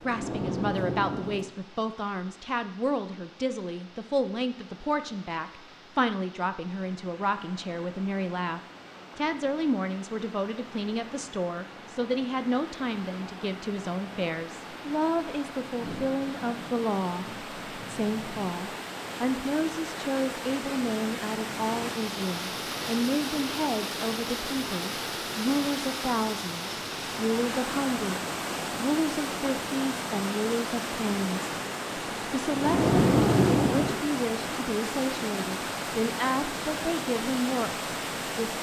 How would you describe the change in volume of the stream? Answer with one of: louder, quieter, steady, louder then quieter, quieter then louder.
louder.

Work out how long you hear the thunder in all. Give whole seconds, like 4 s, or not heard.
6 s.